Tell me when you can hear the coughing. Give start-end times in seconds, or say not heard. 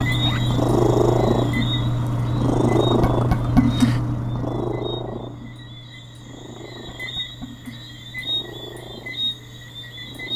not heard.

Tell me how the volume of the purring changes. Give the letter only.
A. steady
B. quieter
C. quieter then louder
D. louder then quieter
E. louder
B.